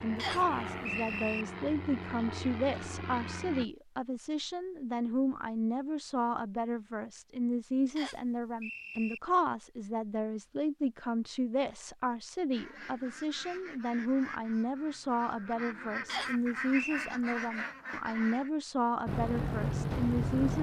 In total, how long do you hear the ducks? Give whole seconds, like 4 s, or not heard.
6 s.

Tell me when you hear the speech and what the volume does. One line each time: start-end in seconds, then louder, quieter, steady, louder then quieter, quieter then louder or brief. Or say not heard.
0.0-20.5 steady.